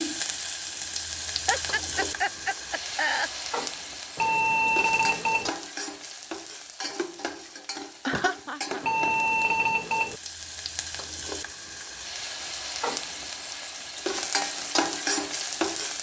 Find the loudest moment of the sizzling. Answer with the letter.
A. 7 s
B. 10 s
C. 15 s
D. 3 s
C.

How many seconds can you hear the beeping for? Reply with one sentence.
The beeping can be heard for 3 seconds in total.